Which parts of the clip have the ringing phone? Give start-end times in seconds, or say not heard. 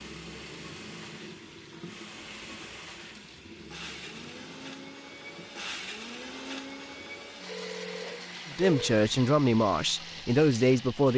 7.5-8.9.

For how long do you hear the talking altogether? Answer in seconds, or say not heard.
3 s.